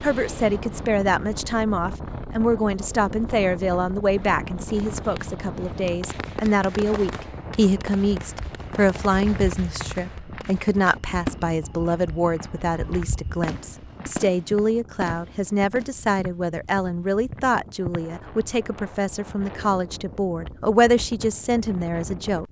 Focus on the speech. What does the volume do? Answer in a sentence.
The loudness of the speech stays about the same.